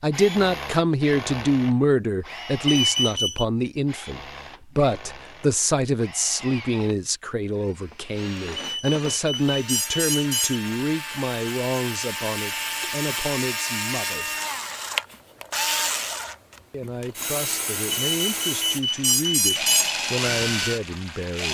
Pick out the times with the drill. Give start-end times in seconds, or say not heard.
0.1-21.4.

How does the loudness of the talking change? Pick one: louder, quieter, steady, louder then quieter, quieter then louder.
quieter.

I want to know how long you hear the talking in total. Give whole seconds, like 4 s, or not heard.
19 s.